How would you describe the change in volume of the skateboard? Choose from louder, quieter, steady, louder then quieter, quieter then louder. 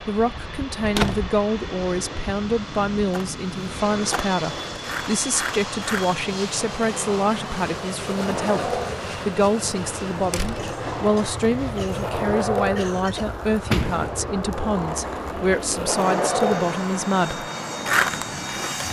louder.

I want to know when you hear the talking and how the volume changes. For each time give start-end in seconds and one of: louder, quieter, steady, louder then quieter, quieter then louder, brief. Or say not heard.
0.1-17.4 steady.